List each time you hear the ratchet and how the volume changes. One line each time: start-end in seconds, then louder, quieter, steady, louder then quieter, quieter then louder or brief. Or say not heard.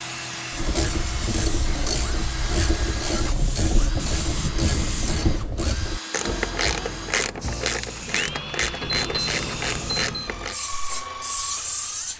0.5-10.6 steady.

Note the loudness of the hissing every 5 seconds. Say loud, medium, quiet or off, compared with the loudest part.
loud, medium, loud.